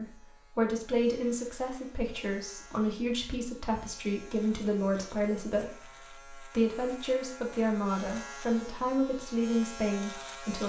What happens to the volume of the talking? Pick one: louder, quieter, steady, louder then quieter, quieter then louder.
steady.